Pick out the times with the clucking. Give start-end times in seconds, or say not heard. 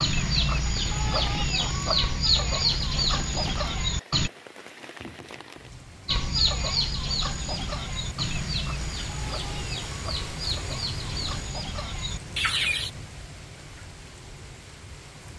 0.0-4.3, 6.0-12.9.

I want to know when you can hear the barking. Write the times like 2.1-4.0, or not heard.
not heard.